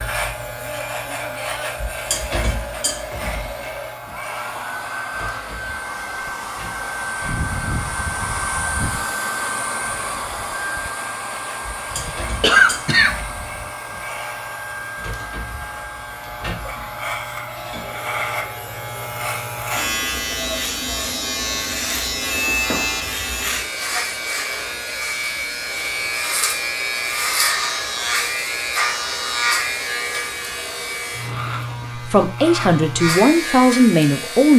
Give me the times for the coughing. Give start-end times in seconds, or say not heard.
11.9-13.2.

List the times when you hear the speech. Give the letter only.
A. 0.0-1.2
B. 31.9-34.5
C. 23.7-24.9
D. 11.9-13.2
B.